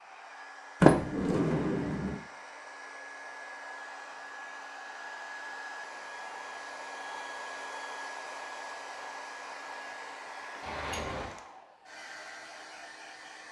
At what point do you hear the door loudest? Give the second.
1 s.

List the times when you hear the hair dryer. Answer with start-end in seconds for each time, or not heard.
0.0-13.4.